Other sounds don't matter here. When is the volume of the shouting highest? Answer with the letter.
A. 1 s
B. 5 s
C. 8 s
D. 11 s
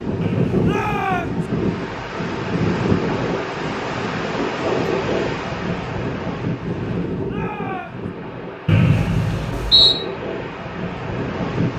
A.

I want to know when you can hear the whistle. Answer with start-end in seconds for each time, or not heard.
0.2-1.0, 8.7-9.9.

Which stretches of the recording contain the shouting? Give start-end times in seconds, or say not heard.
0.6-1.4, 7.2-8.1.